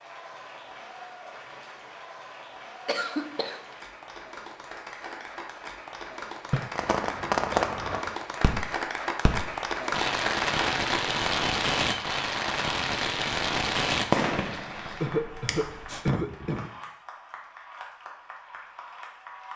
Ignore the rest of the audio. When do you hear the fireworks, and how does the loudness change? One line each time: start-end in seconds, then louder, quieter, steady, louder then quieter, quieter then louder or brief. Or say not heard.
6.8-16.1 steady.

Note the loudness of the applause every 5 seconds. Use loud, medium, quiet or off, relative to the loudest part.
medium, loud, loud, medium.